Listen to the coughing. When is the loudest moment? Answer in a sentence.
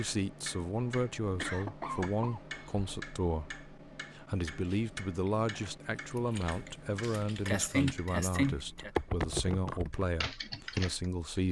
The loudest moment of the coughing is at 8 seconds.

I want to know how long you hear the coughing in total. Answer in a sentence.
You can hear the coughing for 3 seconds altogether.